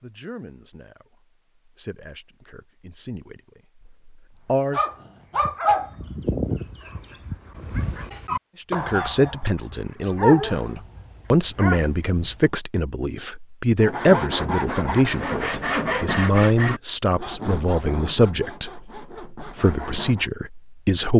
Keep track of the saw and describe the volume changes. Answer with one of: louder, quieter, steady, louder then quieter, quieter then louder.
quieter.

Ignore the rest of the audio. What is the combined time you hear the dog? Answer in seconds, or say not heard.
8 s.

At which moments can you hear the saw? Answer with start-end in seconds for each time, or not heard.
13.8-20.3.